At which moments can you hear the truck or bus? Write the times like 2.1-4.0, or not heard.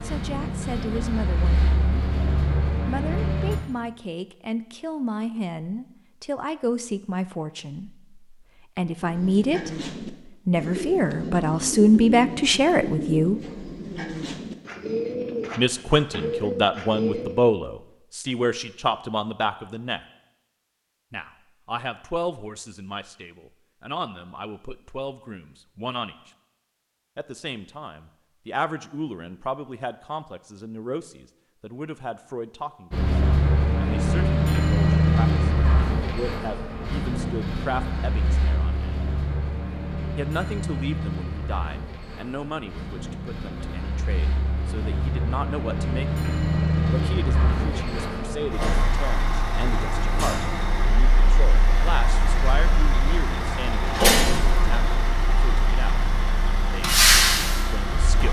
0.0-3.6, 32.9-58.2.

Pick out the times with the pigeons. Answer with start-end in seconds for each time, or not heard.
9.0-17.4.